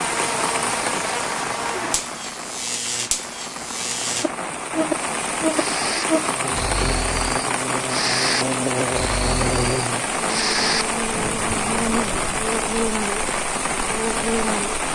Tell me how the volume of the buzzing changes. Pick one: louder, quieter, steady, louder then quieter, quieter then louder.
steady.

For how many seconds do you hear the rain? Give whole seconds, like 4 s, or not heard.
15 s.